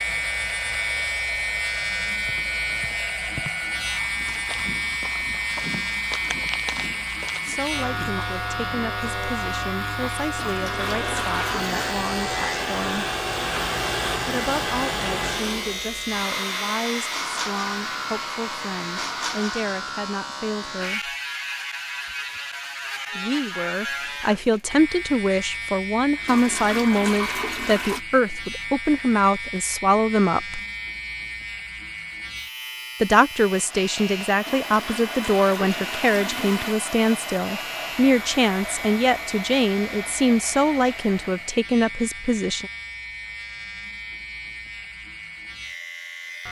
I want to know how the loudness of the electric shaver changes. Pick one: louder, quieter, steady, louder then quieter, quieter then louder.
quieter.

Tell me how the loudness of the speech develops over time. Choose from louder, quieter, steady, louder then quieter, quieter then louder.
louder.